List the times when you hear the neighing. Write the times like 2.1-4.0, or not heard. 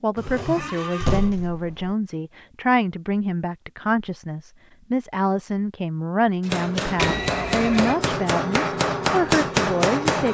0.1-1.4, 7.0-8.0.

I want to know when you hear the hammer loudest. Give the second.
9 s.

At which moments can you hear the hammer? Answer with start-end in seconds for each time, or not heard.
6.5-10.3.